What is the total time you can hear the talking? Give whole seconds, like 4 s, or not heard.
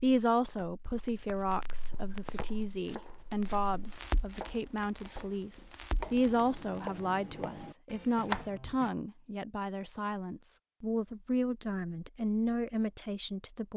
14 s.